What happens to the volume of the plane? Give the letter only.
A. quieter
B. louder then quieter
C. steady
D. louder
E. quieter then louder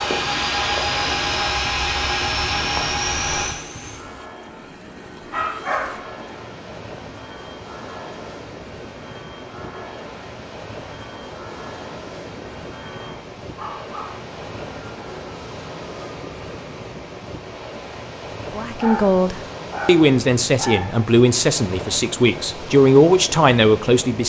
A.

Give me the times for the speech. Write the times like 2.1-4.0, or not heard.
18.5-24.2.